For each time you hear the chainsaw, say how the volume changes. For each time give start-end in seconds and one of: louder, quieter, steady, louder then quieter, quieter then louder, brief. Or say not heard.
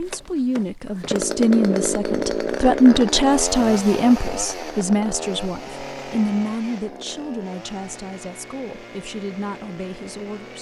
0.0-10.5 quieter.